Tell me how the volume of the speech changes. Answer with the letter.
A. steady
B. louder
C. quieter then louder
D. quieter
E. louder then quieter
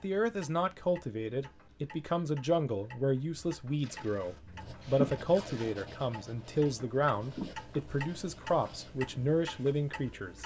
A.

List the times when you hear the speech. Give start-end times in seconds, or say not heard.
0.0-10.4.